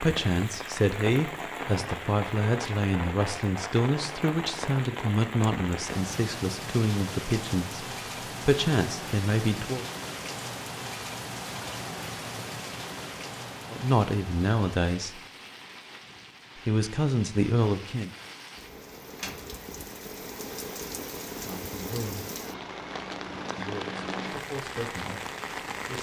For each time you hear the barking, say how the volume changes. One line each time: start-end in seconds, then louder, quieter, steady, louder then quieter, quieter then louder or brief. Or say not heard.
not heard.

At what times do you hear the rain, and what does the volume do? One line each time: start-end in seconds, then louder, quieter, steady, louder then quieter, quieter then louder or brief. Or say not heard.
0.0-25.9 quieter then louder.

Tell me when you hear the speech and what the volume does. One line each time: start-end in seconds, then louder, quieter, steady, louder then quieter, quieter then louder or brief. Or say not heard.
0.0-7.8 steady
8.4-9.8 brief
13.7-15.2 brief
16.6-18.1 brief
21.4-22.2 brief
23.6-25.9 brief.